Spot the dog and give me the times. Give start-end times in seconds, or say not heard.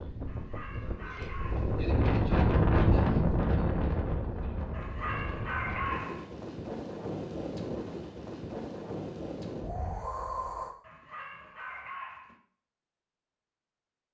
0.2-1.8, 4.7-6.3, 10.8-12.4.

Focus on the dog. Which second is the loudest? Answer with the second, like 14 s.
6 s.